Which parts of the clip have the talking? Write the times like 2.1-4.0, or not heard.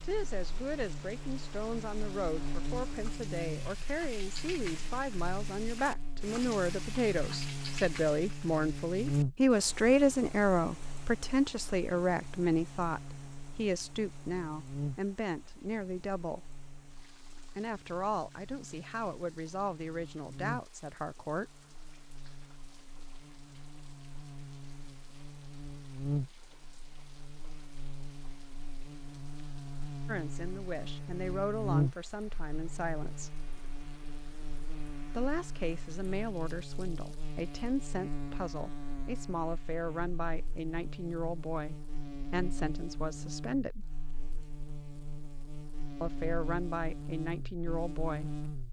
0.0-16.6, 17.6-21.6, 30.1-33.4, 35.1-43.9, 46.0-48.4.